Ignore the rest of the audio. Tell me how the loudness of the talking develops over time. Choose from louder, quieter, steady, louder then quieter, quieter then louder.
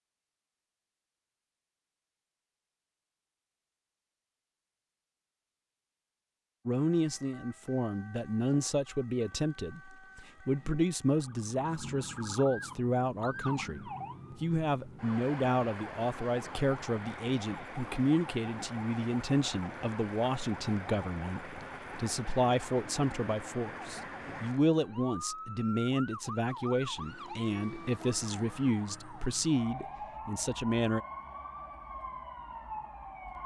steady.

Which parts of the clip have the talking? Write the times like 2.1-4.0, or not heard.
6.7-31.0.